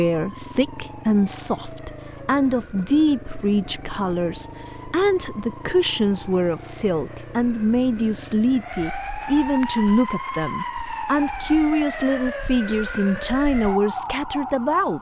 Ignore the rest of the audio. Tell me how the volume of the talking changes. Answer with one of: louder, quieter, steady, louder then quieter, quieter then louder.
steady.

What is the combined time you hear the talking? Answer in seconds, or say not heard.
15 s.